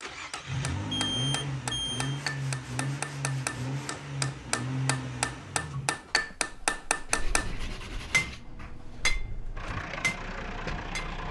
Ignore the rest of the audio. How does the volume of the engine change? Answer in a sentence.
The loudness of the engine goes down, then up.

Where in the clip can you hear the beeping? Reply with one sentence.
The beeping can be heard from 0.9 to 2.2 s.